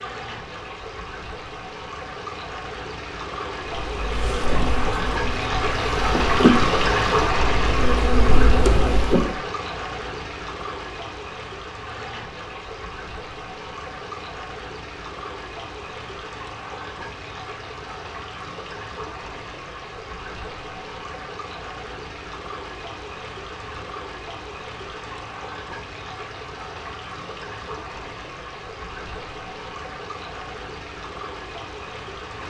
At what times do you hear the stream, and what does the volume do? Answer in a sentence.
You can hear the stream from 0.0 to 32.4 s, getting quieter.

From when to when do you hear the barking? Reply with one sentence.
The barking can't be heard in this clip.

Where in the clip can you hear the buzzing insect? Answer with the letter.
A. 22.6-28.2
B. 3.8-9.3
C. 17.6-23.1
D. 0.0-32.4
B.